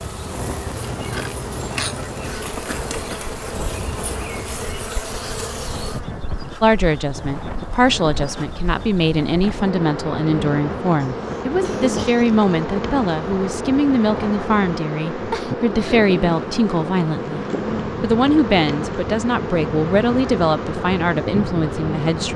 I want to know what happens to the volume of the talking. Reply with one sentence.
The loudness of the talking stays about the same.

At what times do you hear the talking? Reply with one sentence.
You can hear the talking from 6.6 to 22.3 s.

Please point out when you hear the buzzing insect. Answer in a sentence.
The buzzing insect can be heard from 0.0 to 22.3 s.